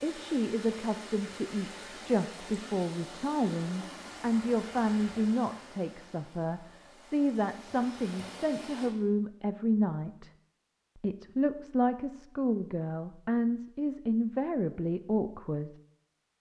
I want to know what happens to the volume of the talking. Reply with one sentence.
The volume of the talking stays about the same.